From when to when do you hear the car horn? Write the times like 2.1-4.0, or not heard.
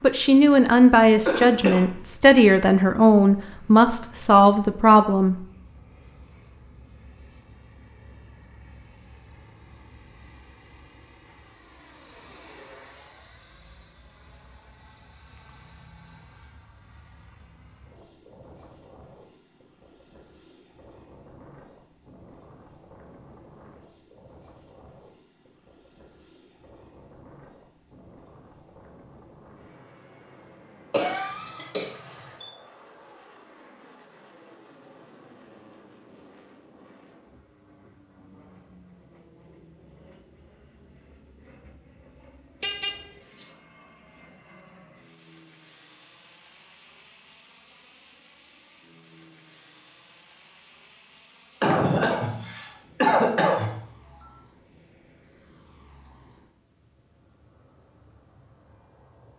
42.6-43.5.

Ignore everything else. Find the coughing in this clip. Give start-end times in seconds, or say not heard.
1.2-1.9, 30.9-32.5, 51.6-54.2.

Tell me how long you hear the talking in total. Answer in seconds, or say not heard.
5 s.